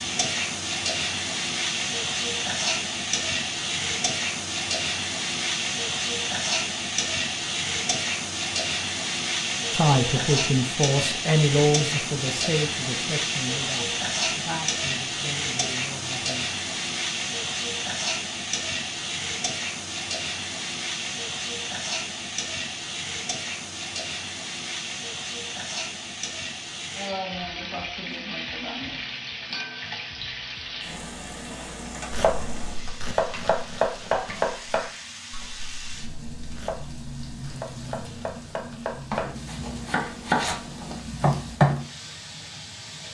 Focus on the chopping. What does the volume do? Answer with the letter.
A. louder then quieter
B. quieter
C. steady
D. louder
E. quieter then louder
E.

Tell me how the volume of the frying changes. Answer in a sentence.
The loudness of the frying goes down.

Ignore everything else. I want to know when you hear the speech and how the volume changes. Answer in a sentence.
You can hear the speech from 9.7 to 16.6 s, getting quieter.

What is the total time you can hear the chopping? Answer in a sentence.
You can hear the chopping for 10 seconds altogether.